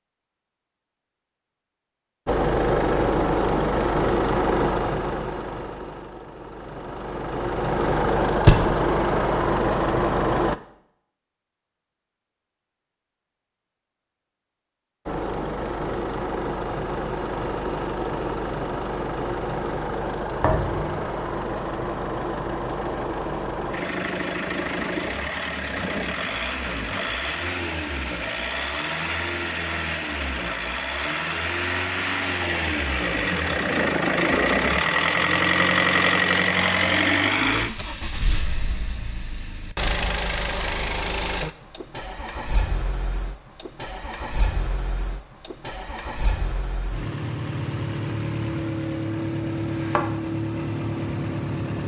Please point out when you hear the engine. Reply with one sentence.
You can hear the engine from 2.2 to 10.6 s and from 15.1 to 51.8 s.